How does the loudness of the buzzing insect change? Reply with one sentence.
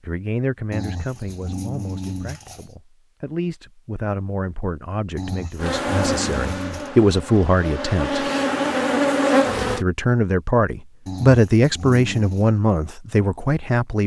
The loudness of the buzzing insect goes down, then up.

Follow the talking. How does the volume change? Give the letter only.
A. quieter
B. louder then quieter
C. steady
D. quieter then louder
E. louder
E.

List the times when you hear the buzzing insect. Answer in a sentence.
The buzzing insect can be heard from 5.5 to 9.8 s.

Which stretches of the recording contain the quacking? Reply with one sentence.
You can't hear the quacking here.